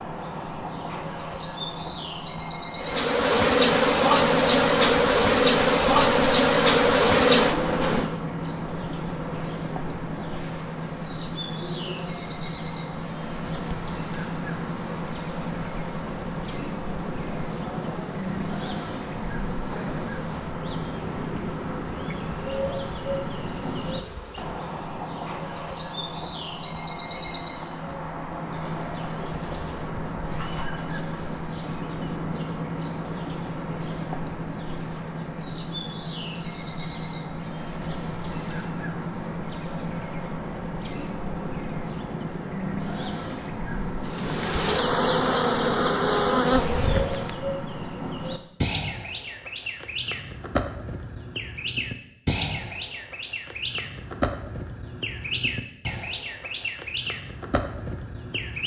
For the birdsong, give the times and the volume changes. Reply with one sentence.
You can hear the birdsong from 0.0 to 58.6 s, at a steady volume.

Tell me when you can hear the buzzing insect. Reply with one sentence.
You can hear the buzzing insect from 2.8 to 24.8 s and from 44.0 to 47.4 s.